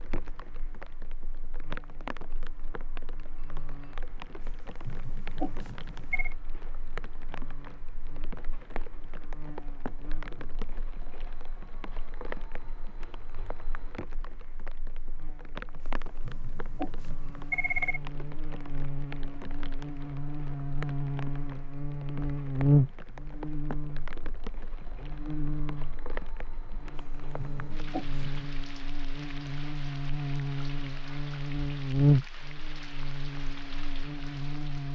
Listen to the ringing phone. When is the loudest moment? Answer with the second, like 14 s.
18 s.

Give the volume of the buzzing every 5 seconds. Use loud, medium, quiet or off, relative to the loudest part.
quiet, quiet, quiet, quiet, loud, medium, loud.